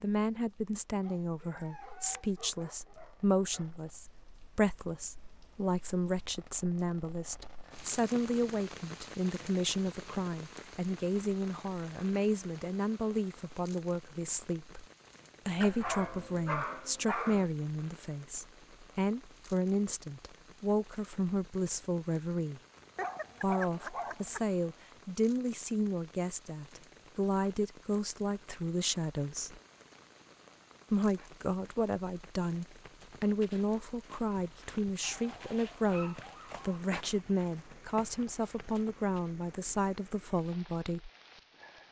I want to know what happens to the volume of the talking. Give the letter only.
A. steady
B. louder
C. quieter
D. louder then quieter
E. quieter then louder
A.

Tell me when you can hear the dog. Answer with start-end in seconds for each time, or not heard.
1.1-3.6, 15.6-17.4, 22.9-24.4, 35.0-36.8.